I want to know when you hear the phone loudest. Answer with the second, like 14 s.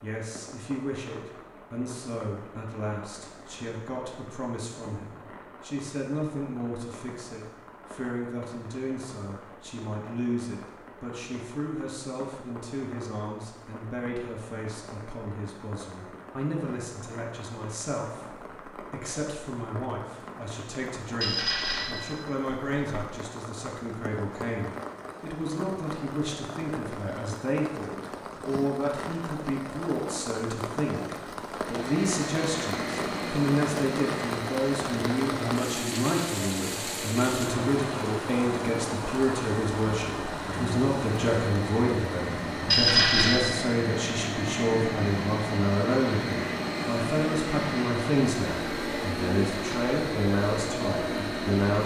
43 s.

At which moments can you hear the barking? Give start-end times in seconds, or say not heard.
not heard.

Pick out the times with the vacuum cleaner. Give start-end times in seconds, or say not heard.
31.6-51.8.